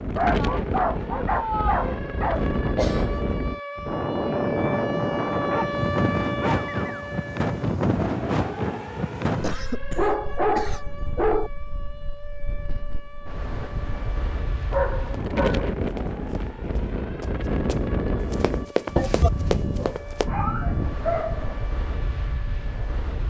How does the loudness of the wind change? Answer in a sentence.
The loudness of the wind goes down, then up.